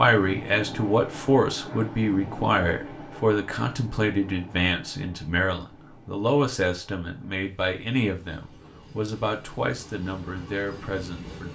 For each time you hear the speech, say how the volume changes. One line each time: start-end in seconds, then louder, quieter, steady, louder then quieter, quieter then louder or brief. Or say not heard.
0.0-11.5 quieter.